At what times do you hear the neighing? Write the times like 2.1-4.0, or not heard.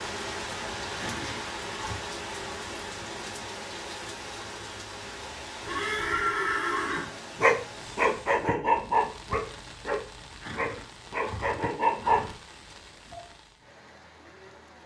0.9-2.0, 5.7-7.1, 10.4-12.4.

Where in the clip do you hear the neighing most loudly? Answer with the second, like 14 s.
6 s.